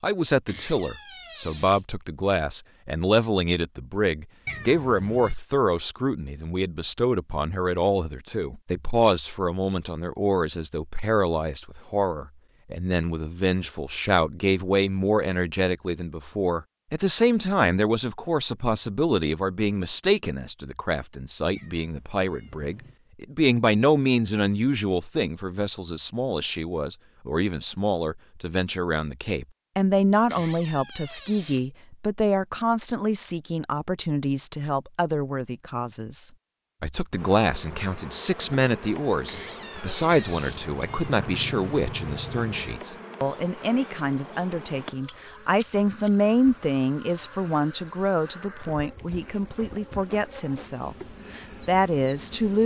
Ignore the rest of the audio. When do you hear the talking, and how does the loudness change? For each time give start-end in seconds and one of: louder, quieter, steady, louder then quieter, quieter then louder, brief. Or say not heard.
0.0-52.6 steady.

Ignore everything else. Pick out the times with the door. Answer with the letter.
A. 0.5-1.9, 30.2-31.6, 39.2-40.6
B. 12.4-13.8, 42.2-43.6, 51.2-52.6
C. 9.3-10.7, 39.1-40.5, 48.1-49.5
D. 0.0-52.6
A.